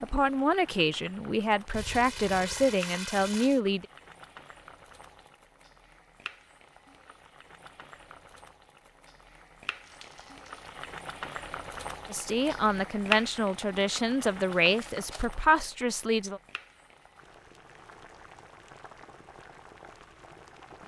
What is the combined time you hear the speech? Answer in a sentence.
You can hear the speech for 8 seconds altogether.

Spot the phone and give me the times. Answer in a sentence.
You can't hear the phone here.